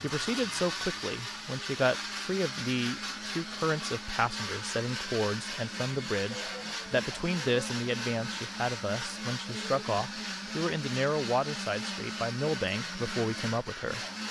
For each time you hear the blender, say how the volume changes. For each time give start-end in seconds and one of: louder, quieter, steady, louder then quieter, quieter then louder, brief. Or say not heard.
0.0-14.2 steady.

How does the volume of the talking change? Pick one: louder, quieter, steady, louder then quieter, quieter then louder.
steady.